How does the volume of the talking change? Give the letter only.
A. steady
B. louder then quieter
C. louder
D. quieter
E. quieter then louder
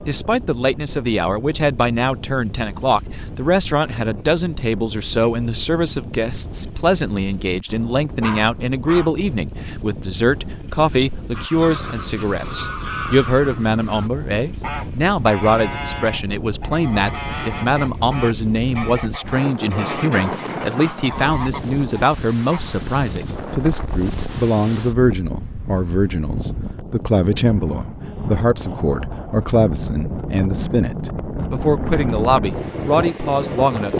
A.